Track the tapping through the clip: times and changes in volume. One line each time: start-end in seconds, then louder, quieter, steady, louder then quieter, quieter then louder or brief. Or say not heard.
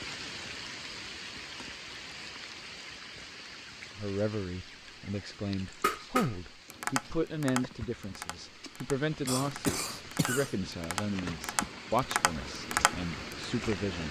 5.8-13.4 quieter then louder.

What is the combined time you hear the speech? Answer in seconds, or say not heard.
10 s.